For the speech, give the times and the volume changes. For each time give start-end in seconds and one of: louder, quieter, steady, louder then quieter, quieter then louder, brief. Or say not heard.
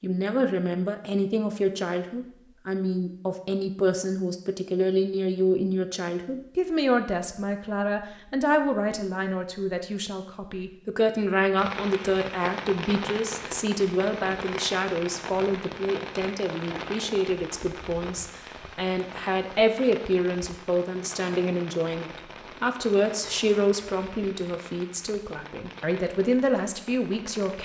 0.0-27.5 steady.